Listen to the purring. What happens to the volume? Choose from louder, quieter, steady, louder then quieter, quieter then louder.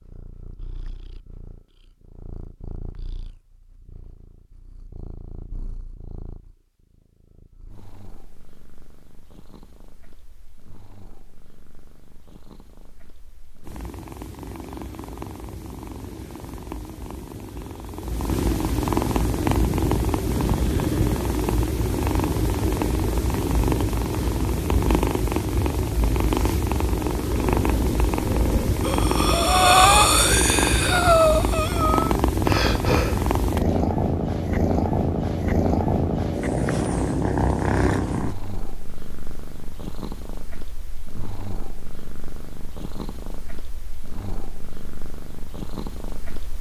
louder then quieter.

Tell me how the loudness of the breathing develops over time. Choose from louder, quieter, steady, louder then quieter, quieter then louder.
louder then quieter.